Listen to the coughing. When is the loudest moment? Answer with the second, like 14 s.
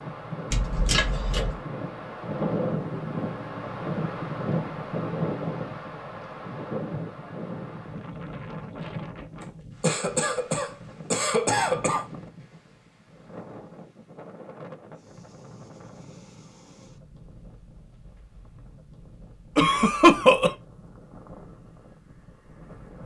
20 s.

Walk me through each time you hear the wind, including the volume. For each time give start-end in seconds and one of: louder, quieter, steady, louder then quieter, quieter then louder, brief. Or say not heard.
0.0-23.0 quieter.